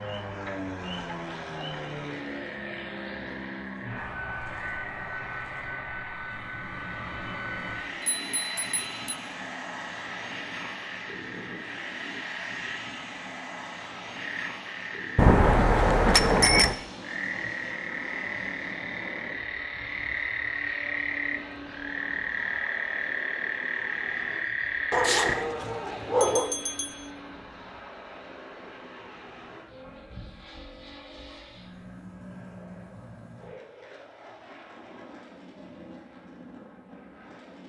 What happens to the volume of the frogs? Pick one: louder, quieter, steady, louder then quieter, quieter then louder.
louder.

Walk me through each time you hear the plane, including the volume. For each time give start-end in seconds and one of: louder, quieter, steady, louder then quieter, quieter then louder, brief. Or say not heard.
0.0-37.6 quieter.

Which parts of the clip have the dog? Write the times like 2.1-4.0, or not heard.
24.9-26.5.